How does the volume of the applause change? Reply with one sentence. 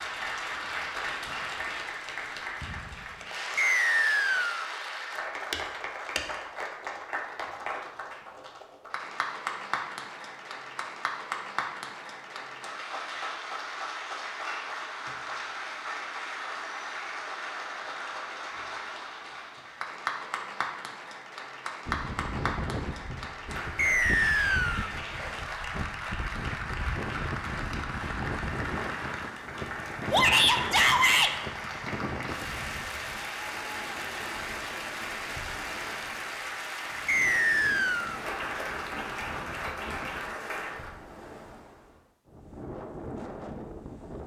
The volume of the applause stays about the same.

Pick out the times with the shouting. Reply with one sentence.
You can hear the shouting from 30.1 to 31.3 s.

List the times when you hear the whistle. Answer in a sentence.
The whistle can be heard from 3.5 to 4.7 s, from 23.8 to 24.9 s and from 37.0 to 38.2 s.